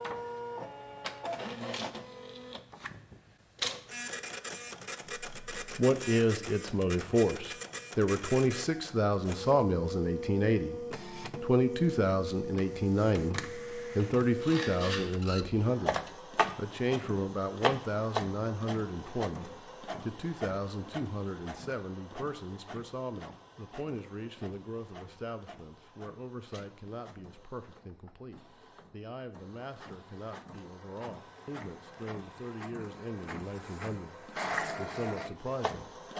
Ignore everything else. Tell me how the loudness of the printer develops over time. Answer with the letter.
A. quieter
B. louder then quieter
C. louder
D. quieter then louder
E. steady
D.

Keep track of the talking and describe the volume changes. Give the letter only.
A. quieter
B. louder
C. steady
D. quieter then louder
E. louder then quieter
A.